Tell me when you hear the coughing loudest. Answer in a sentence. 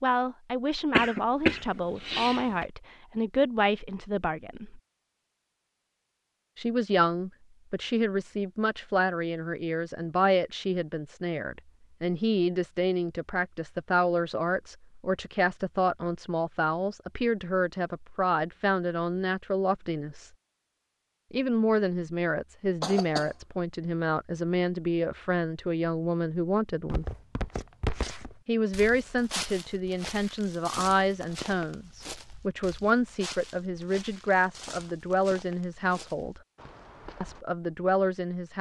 The volume of the coughing peaks at 1 second.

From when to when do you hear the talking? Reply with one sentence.
You can hear the talking from 0.0 to 4.8 s, from 6.5 to 20.3 s, from 21.3 to 27.1 s, from 28.4 to 36.4 s and from 37.2 to 38.5 s.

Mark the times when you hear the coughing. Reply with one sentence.
The coughing can be heard from 0.9 to 2.6 s and from 22.8 to 23.4 s.